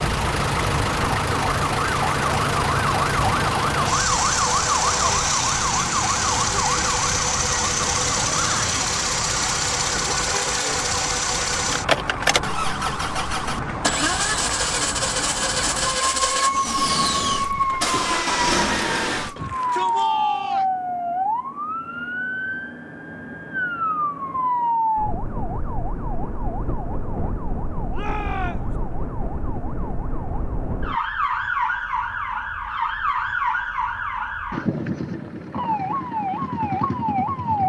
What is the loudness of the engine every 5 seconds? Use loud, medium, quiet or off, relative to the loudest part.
loud, loud, loud, loud, off, off, off, off.